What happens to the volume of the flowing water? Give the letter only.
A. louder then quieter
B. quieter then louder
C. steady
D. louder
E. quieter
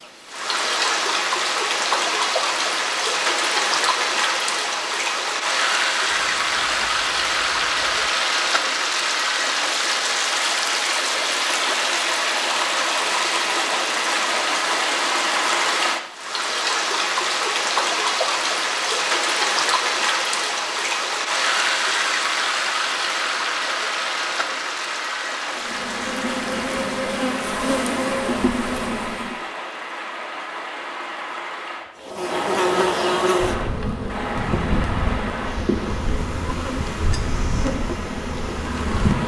E.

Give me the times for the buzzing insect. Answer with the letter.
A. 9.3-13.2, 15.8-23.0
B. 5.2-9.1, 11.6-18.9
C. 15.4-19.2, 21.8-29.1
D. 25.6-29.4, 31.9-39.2
D.